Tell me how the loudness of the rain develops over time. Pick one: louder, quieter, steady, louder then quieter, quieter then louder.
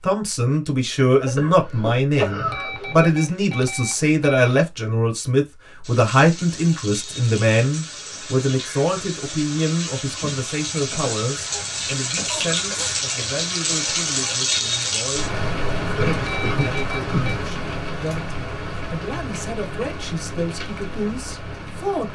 louder then quieter.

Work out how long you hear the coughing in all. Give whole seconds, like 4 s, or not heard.
5 s.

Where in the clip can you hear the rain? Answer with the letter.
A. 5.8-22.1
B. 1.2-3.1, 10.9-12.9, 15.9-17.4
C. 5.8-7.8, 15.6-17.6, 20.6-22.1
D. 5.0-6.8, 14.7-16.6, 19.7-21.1
A.